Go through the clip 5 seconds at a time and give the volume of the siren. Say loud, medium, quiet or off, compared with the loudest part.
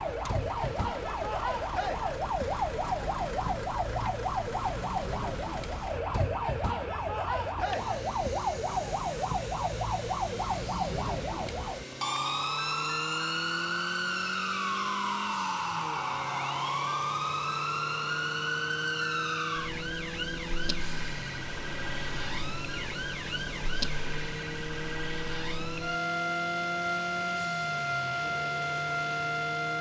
loud, loud, loud, loud, medium, loud.